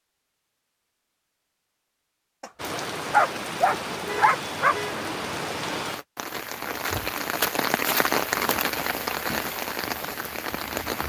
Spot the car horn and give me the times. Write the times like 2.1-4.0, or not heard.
4.0-5.0.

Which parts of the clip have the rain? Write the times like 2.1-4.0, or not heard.
2.5-11.0.